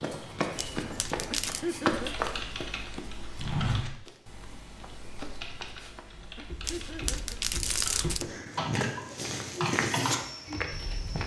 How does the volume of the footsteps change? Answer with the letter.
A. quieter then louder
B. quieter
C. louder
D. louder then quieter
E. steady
A.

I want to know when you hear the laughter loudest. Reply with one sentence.
The volume of the laughter peaks at 2 seconds.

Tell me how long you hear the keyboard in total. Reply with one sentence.
You can hear the keyboard for 9 seconds altogether.